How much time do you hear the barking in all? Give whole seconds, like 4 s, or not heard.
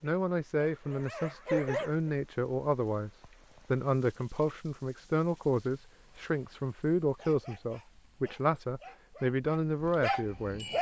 7 s.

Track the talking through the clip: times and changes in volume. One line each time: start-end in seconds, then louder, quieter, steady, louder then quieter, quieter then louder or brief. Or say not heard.
0.0-10.7 steady.